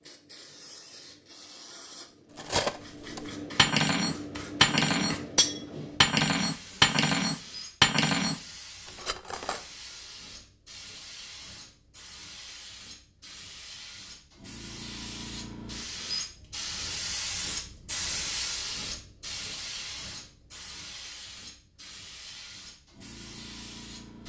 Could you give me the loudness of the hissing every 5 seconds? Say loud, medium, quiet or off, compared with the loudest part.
medium, medium, medium, loud, medium.